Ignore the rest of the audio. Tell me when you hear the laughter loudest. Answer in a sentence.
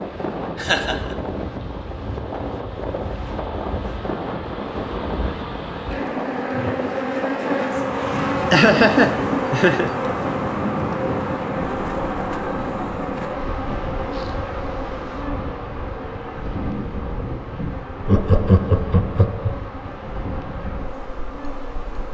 The volume of the laughter peaks at 9 seconds.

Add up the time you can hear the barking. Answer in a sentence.
The barking can't be heard in this clip.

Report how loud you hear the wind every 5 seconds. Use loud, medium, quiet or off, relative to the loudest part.
loud, loud, loud, medium, medium.